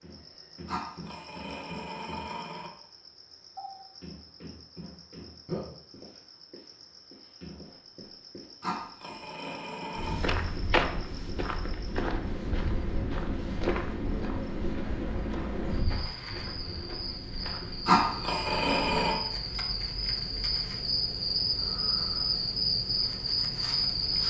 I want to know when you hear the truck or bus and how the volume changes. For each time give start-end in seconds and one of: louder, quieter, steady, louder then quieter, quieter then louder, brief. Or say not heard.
not heard.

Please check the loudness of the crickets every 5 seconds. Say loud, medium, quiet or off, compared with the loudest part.
quiet, quiet, medium, medium, loud.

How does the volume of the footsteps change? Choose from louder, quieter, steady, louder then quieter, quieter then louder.
quieter.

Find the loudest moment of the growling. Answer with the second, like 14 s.
18 s.